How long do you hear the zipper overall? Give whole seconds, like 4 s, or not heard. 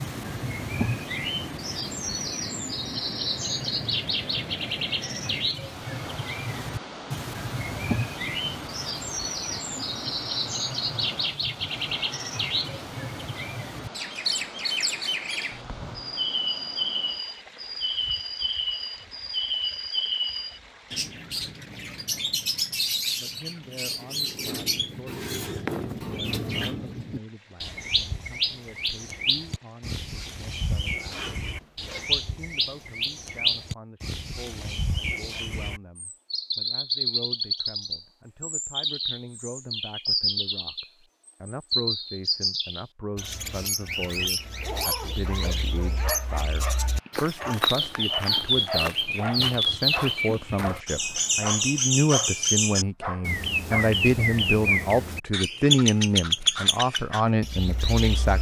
3 s.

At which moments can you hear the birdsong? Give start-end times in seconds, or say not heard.
0.0-58.3.